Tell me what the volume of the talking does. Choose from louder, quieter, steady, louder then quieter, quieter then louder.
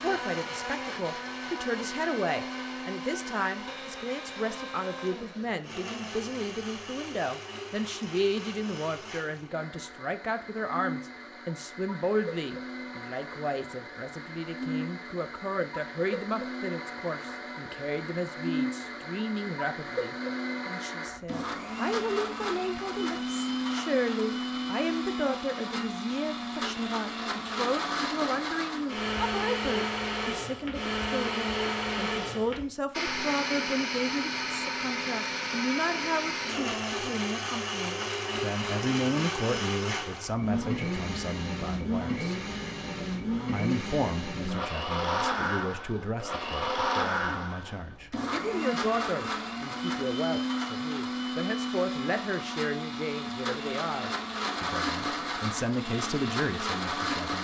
steady.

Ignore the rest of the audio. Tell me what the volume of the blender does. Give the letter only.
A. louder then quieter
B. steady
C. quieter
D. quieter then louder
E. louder
E.